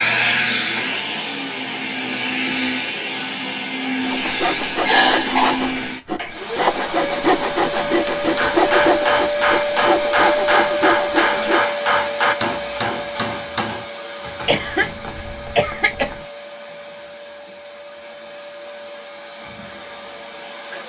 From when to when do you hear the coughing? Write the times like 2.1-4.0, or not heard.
4.8-5.6, 14.4-16.2.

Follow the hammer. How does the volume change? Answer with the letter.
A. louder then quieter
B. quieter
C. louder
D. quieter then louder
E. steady
B.